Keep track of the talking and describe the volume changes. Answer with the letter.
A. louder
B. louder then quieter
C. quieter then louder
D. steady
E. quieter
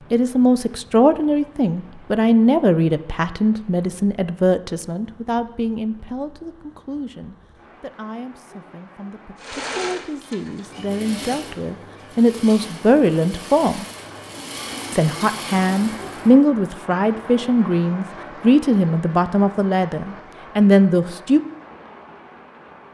C.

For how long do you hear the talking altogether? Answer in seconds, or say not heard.
20 s.